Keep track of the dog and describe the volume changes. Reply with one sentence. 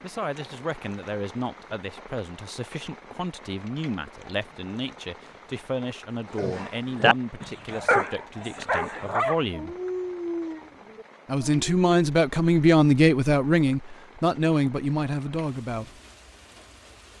The loudness of the dog goes down.